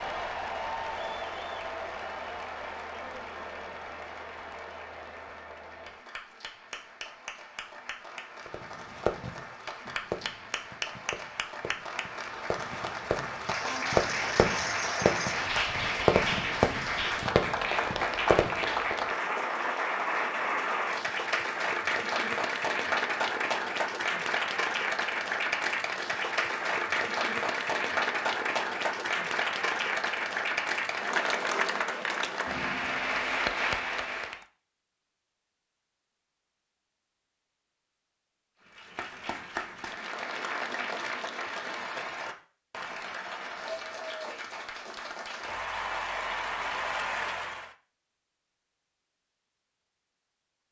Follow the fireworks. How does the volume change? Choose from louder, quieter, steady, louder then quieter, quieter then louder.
quieter then louder.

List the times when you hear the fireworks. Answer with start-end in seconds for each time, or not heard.
8.4-18.9.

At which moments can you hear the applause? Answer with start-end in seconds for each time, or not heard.
0.0-34.5, 38.6-47.7.